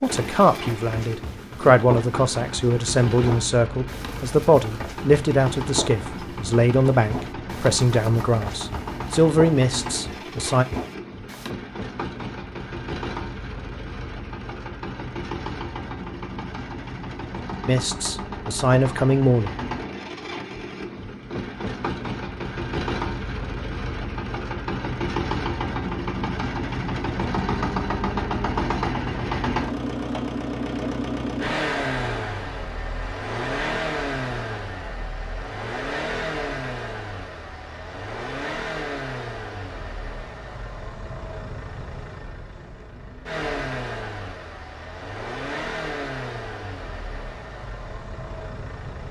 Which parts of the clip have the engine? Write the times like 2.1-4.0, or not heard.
0.0-49.0.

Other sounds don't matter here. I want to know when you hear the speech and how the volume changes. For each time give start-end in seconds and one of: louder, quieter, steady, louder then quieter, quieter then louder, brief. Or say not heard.
0.0-10.7 steady
17.6-19.5 brief.